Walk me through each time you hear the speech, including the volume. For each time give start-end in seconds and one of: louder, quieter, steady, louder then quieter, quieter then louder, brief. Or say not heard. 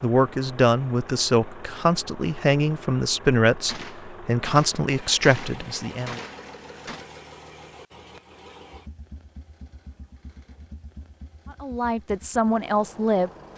0.0-6.2 steady
11.6-13.5 brief.